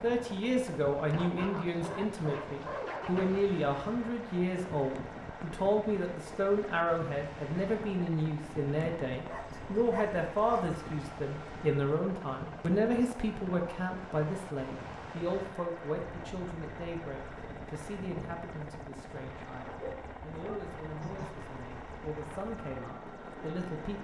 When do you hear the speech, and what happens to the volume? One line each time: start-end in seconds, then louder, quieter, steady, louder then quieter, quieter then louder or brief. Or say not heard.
0.0-24.0 quieter.